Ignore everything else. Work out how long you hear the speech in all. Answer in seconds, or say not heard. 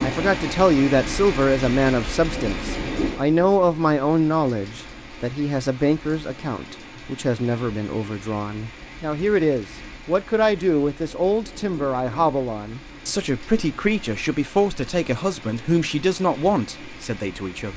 18 s.